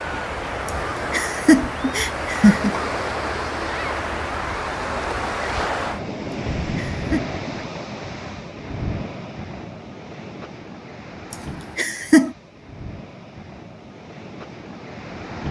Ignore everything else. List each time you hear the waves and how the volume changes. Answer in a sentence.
The waves can be heard from 0.0 to 15.4 s, getting quieter.